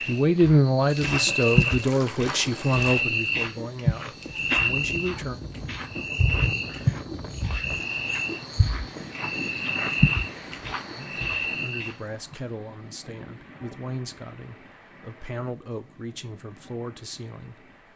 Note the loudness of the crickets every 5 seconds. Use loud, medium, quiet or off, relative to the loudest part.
loud, loud, loud, off.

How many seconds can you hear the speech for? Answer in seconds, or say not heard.
12 s.